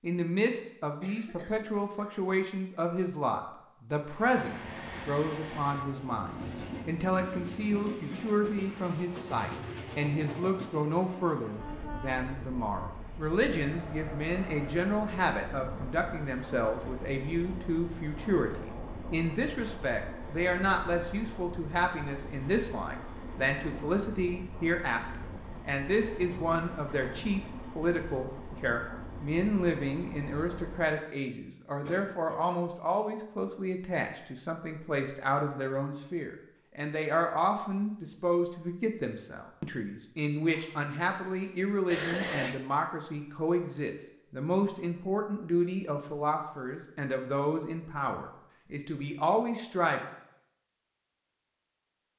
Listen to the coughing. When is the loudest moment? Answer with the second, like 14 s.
42 s.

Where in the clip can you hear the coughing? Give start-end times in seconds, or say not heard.
1.0-2.1, 31.8-32.4, 40.5-42.5.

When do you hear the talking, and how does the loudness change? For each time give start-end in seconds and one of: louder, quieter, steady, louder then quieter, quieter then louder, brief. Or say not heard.
0.0-50.0 steady.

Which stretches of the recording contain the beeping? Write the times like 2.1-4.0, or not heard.
not heard.